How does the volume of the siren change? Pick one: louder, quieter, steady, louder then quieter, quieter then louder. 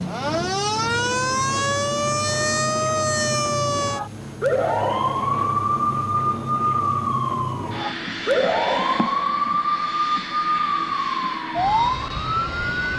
steady.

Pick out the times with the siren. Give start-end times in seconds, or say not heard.
0.0-12.9.